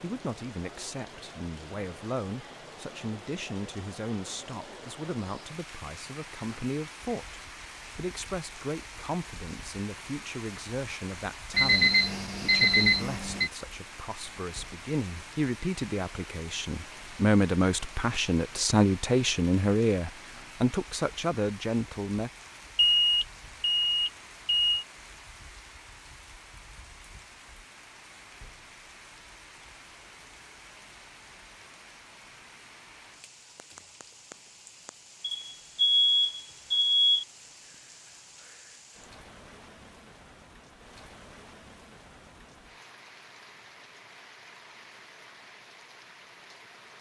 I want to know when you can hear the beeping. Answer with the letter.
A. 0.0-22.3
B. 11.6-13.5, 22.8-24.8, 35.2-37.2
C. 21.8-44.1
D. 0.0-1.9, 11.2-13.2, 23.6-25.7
B.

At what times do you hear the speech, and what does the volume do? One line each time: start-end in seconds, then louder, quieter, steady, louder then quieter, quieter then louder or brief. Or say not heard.
0.0-22.3 louder.